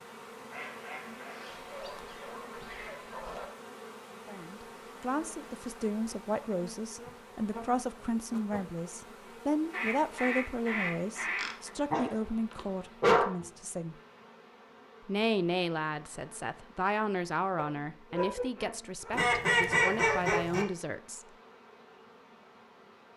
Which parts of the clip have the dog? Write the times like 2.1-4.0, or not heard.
1.4-3.5, 11.3-13.2, 17.6-19.1.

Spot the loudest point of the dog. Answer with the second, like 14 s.
13 s.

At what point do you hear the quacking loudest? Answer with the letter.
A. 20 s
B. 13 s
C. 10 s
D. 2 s
A.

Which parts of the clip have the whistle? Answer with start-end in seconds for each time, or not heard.
not heard.